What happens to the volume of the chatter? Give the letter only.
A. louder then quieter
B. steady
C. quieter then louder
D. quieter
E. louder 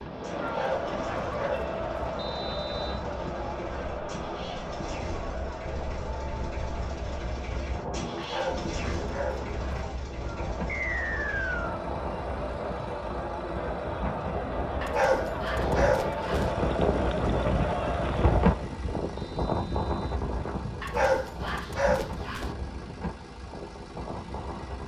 C.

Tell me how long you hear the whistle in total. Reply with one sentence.
The whistle can be heard for 3 seconds in total.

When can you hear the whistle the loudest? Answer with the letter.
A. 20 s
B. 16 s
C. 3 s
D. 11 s
D.